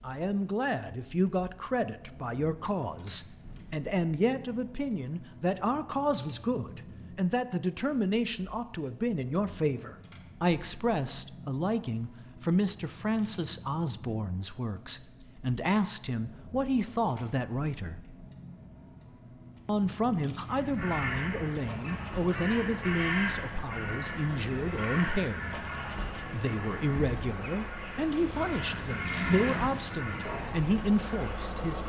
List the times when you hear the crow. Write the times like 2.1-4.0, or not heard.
20.5-31.5.